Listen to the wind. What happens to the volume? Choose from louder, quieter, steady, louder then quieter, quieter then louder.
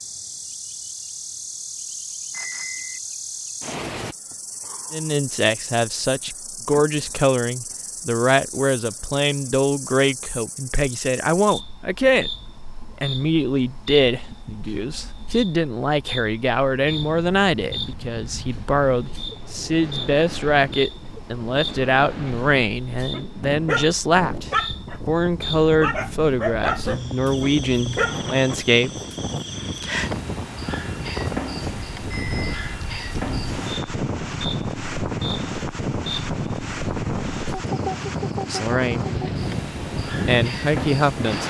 louder.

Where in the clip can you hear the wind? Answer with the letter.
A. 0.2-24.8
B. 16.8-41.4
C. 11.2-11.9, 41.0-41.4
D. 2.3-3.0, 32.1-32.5
B.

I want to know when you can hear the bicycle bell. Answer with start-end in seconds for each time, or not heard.
2.3-3.0, 32.1-32.5.